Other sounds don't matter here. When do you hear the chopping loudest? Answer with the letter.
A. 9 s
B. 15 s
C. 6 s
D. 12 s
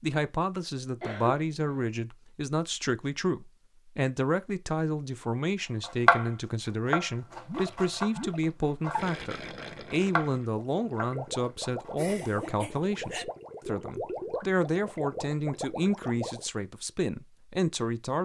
C.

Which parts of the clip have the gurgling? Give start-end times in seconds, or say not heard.
7.5-16.5.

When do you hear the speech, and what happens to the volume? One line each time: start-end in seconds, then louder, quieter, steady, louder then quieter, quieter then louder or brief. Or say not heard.
0.0-18.2 steady.